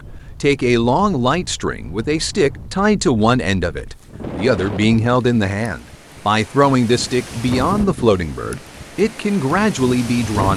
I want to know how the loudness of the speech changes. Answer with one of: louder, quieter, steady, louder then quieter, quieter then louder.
steady.